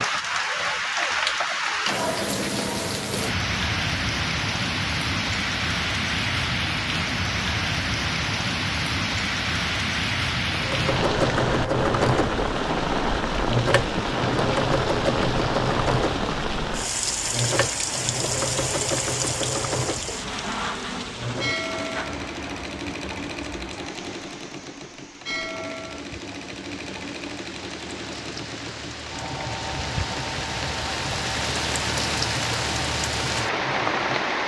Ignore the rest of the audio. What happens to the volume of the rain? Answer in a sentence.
The loudness of the rain goes down, then up.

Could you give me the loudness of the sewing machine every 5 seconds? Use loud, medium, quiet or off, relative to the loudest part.
off, off, loud, loud, medium, medium, medium.